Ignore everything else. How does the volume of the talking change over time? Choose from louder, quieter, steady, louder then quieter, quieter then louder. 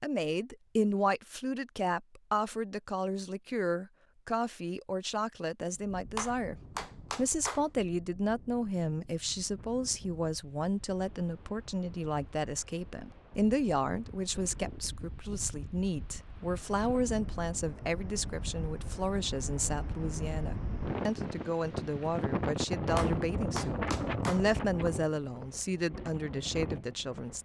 steady.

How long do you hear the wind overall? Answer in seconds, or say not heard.
22 s.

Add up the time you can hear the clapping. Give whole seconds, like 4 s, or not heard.
3 s.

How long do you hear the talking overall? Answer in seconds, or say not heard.
27 s.